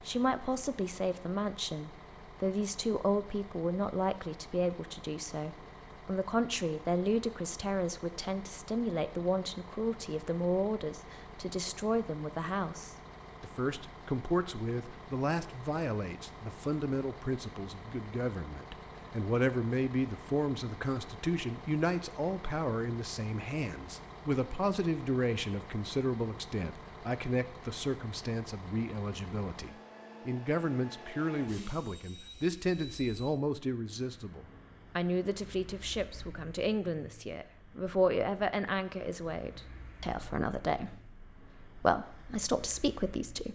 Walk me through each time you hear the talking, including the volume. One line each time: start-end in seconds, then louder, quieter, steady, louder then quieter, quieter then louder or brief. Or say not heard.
0.0-43.4 steady.